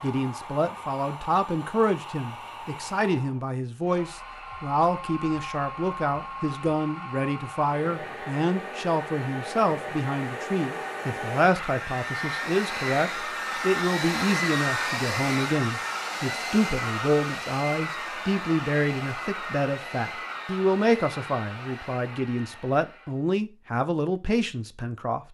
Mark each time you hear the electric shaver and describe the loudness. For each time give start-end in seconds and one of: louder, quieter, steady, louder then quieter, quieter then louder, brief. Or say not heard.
not heard.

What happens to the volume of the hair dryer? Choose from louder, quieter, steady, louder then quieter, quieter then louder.
louder then quieter.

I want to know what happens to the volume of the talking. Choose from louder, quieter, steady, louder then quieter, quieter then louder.
steady.